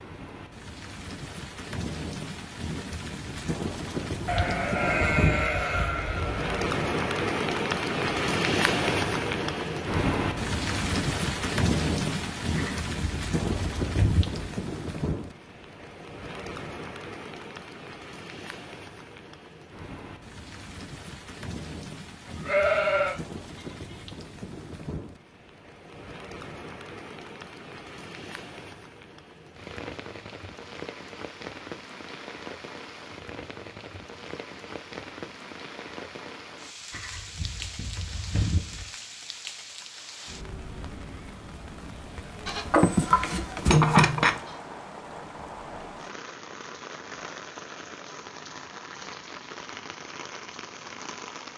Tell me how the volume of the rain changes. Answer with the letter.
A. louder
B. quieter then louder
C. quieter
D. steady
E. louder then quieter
C.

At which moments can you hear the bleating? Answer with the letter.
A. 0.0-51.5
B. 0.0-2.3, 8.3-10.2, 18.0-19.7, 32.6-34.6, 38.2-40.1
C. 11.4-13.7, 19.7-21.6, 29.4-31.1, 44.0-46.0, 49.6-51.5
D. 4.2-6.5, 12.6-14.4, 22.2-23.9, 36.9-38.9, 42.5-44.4
D.